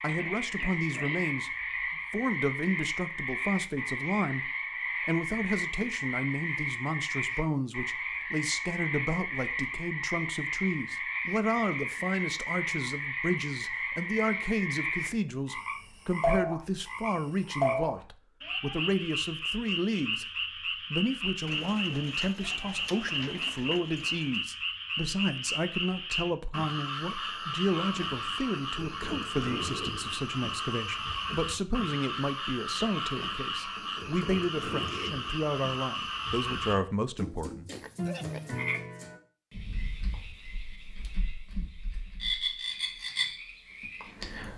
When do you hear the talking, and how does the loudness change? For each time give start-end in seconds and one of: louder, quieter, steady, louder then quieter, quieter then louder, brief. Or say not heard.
0.0-20.3 steady
20.9-37.8 steady.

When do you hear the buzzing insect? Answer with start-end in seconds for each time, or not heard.
not heard.